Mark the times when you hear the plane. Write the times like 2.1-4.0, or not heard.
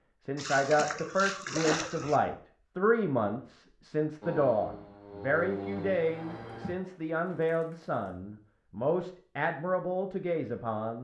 4.2-6.8.